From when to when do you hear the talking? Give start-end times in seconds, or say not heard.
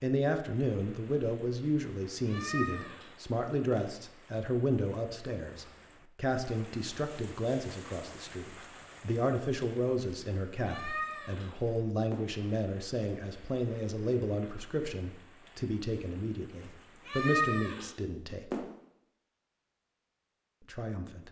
0.0-18.6, 20.6-21.2.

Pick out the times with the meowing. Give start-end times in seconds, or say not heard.
2.2-3.8, 10.7-12.2, 17.1-18.6.